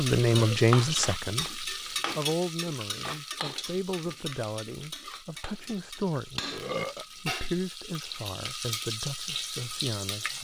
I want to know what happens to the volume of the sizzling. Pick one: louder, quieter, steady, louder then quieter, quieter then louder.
quieter then louder.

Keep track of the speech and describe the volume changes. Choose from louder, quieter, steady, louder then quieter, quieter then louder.
quieter.